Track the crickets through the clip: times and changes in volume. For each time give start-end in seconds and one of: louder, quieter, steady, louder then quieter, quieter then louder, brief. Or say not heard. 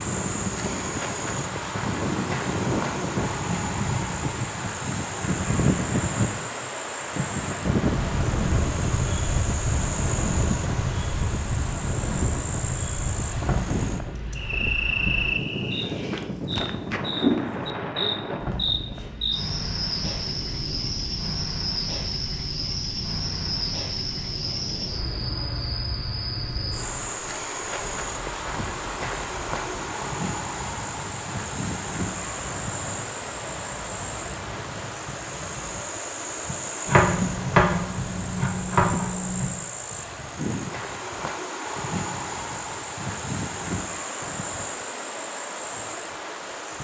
0.0-46.7 steady.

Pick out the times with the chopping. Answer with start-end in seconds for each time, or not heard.
36.9-39.5.